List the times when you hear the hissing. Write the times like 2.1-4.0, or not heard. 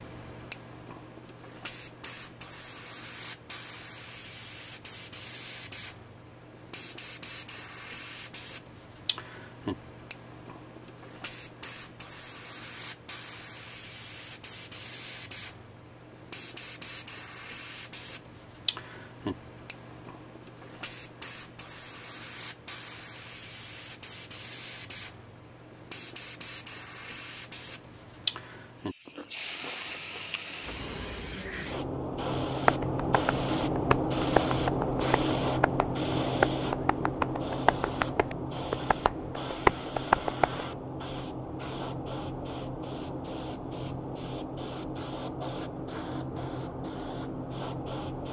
0.0-48.2.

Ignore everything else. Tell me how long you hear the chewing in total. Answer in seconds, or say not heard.
2 s.